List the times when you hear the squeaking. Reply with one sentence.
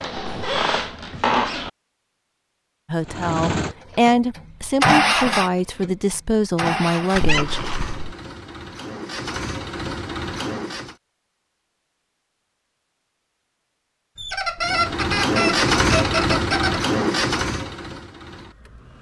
The squeaking can be heard from 0.0 to 1.7 s, from 7.2 to 8.2 s and from 14.2 to 16.8 s.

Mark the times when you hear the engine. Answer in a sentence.
You can hear the engine from 3.0 to 10.9 s and from 14.6 to 18.9 s.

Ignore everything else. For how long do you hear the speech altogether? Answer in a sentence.
The speech can be heard for 5 seconds in total.